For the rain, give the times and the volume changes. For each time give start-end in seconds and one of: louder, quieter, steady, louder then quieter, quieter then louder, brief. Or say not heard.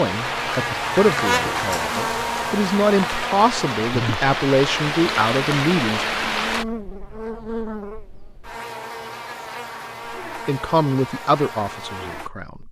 0.0-6.7 louder.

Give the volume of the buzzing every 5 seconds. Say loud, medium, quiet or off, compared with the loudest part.
loud, medium, medium.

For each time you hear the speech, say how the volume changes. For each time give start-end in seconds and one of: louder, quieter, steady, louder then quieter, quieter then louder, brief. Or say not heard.
0.0-6.0 quieter then louder
10.3-12.6 brief.